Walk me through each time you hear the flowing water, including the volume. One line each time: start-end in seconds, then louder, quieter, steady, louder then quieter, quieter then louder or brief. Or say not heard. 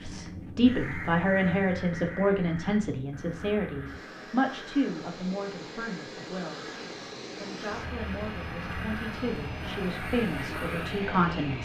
not heard.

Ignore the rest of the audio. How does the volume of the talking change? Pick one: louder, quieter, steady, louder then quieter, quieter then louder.
quieter then louder.